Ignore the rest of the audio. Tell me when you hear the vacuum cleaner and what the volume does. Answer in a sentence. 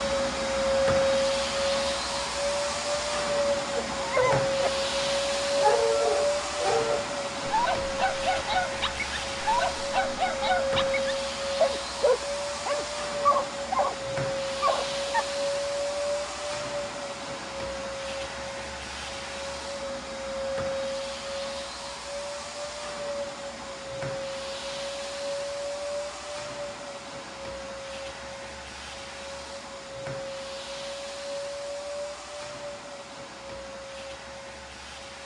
The vacuum cleaner can be heard from 0.0 to 35.2 s, getting quieter.